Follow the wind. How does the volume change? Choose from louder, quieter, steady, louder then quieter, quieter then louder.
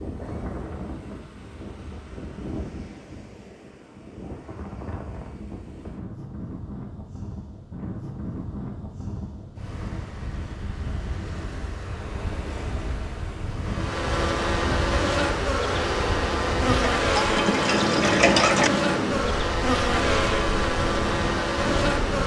louder.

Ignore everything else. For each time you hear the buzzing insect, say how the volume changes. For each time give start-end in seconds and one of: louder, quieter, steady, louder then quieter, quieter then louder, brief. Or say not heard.
13.7-22.2 steady.